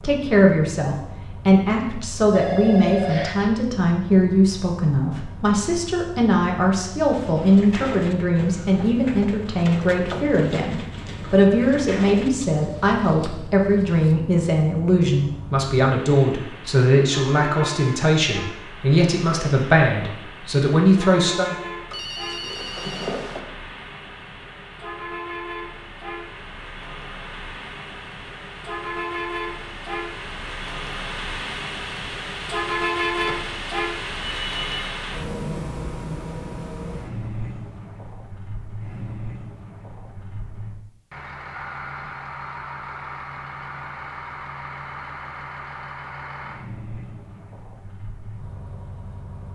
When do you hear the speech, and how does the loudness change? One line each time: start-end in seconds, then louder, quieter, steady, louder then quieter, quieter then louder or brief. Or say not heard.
0.0-21.6 steady.